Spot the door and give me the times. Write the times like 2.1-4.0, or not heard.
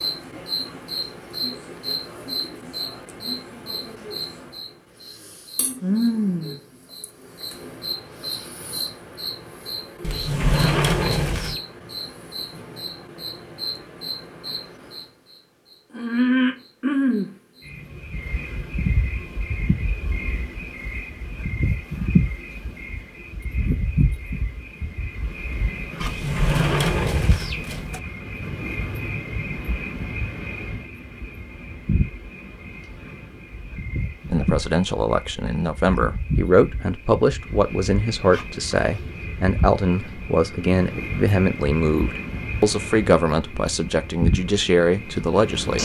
10.0-11.6, 26.0-28.0.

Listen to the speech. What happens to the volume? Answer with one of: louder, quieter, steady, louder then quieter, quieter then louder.
steady.